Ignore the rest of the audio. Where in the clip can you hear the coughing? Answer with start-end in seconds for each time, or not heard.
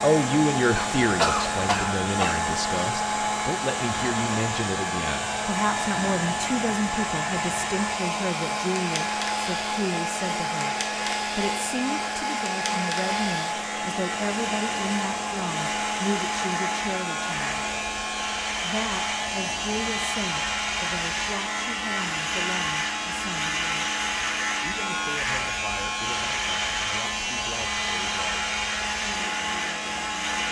0.8-2.4.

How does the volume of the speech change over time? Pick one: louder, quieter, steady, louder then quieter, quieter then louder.
quieter.